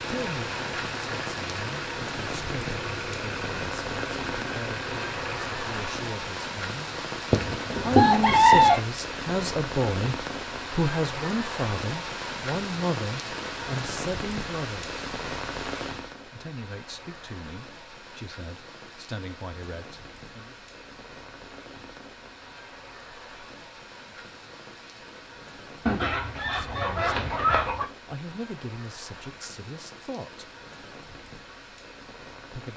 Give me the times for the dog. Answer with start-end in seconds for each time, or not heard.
not heard.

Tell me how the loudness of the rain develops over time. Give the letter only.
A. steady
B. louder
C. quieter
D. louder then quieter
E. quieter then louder
C.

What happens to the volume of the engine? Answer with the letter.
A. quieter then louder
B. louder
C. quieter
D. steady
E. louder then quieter
D.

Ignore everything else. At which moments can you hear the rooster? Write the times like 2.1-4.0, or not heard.
7.3-8.8, 25.9-27.9.